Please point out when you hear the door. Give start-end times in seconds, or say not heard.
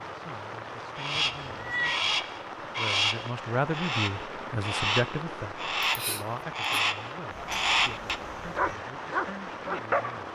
not heard.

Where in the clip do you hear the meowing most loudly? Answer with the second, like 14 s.
2 s.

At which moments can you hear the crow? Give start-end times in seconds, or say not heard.
0.9-8.2.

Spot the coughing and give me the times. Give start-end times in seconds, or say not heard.
5.8-6.8.